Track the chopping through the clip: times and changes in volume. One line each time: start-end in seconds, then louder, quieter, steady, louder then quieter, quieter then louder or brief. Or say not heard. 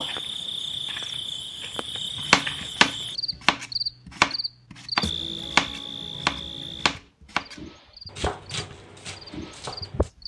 2.3-10.1 quieter.